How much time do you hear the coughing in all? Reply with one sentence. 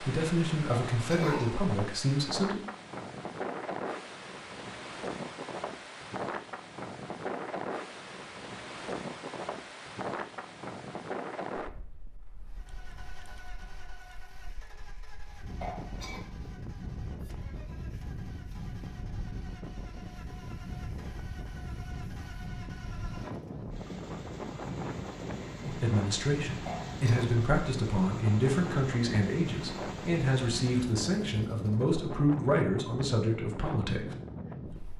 You can hear the coughing for 2 seconds altogether.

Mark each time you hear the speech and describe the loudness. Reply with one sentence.
You can hear the speech briefly from 0.0 to 2.6 s; and from 25.6 to 34.1 s, at a steady volume.